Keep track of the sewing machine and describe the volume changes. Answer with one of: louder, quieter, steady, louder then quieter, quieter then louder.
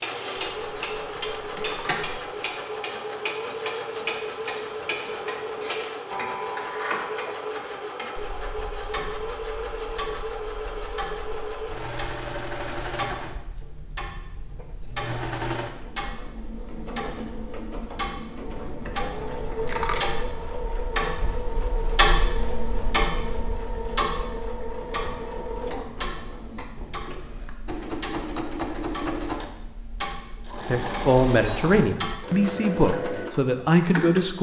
steady.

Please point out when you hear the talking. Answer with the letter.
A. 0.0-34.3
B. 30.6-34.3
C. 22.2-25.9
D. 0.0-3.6
B.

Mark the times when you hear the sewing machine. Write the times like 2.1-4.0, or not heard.
0.0-34.3.